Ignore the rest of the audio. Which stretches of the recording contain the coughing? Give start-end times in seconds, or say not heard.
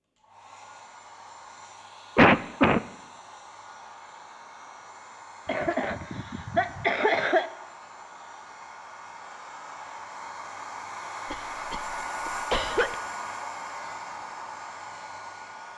2.1-2.8, 5.5-7.5, 11.2-12.9.